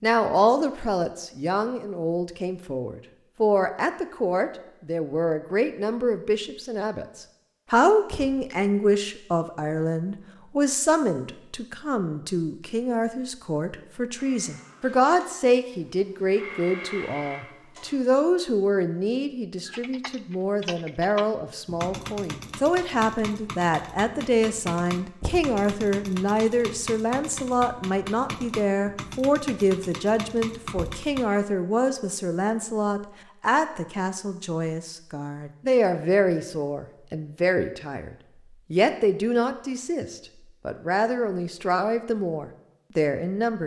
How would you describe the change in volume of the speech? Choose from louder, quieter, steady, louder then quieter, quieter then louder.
steady.